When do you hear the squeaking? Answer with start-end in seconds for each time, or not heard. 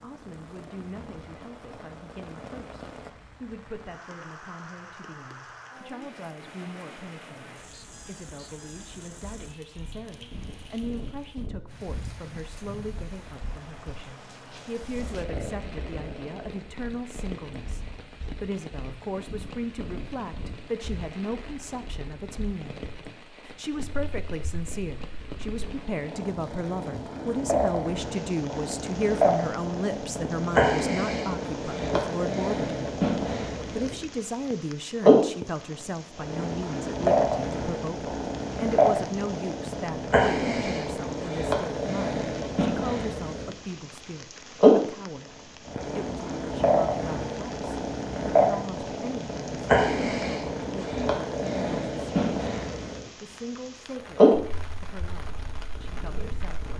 7.7-8.9.